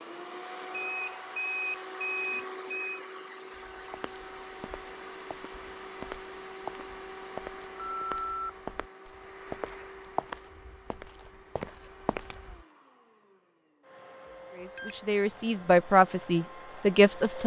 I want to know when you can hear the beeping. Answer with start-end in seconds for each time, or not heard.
0.7-3.0, 7.8-8.5, 14.8-15.3.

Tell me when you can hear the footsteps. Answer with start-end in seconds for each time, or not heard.
3.8-12.7.